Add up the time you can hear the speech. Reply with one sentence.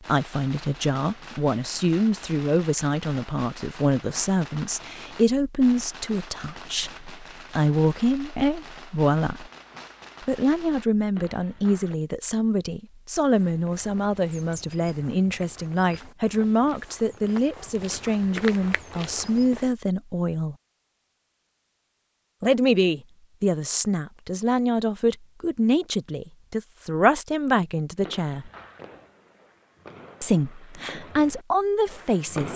You can hear the speech for 28 seconds altogether.